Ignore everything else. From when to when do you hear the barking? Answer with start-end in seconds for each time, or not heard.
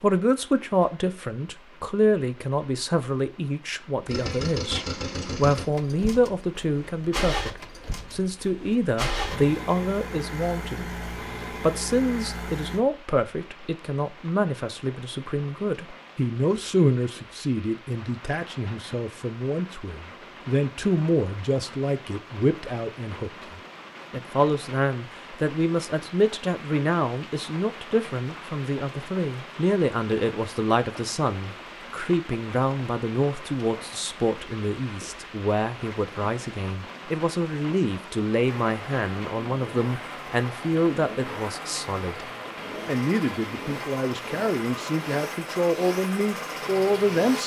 not heard.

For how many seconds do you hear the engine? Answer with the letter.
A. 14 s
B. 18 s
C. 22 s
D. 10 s
B.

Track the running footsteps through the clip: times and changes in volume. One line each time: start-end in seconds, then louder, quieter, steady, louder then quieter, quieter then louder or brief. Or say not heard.
not heard.